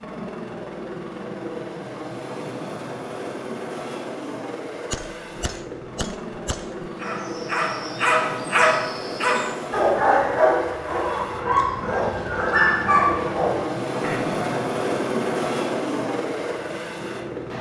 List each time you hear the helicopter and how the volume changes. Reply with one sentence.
The helicopter can be heard from 0.0 to 17.5 s, getting louder.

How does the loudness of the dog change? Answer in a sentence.
The loudness of the dog stays about the same.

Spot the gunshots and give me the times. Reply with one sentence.
You can hear the gunshots from 4.9 to 6.9 s.